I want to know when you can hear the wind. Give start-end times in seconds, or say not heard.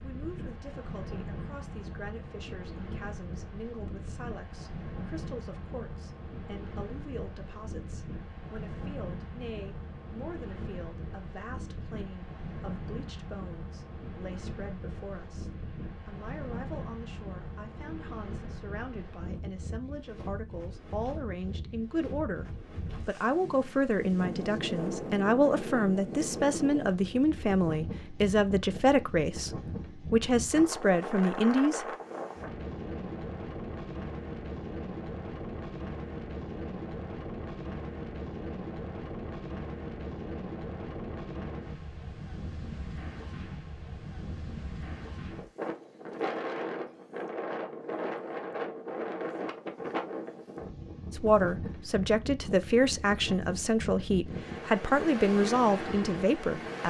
0.0-56.8.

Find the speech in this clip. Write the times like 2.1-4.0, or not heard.
0.0-22.4, 23.1-31.9, 51.1-56.8.